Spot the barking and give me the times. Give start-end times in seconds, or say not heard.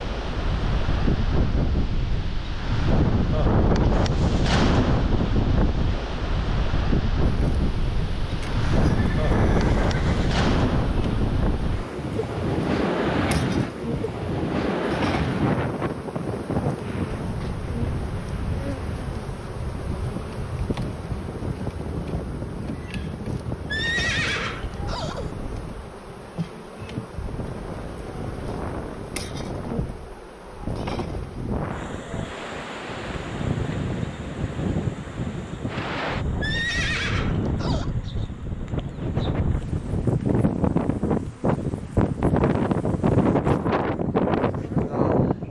not heard.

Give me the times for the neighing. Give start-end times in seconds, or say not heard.
8.6-10.4, 23.7-25.4, 36.4-38.0.